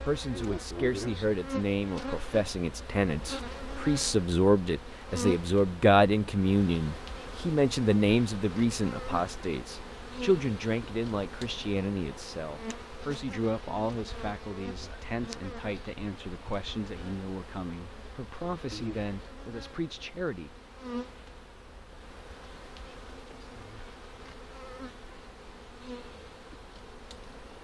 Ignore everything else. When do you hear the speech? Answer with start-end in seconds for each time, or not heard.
0.0-20.5.